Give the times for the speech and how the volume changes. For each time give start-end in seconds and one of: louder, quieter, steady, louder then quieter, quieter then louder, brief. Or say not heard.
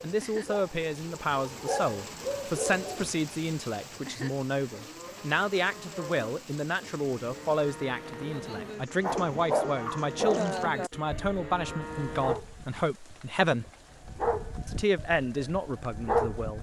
0.0-13.7 steady
14.7-16.5 brief.